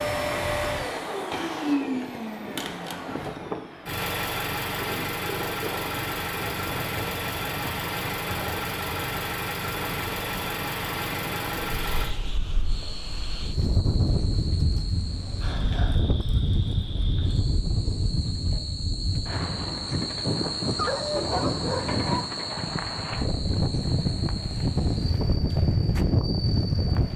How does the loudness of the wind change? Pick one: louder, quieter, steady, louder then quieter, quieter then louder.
louder.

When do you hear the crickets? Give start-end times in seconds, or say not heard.
12.6-27.1.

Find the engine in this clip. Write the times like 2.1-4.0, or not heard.
0.0-12.1.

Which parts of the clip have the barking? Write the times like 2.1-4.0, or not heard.
20.8-22.2.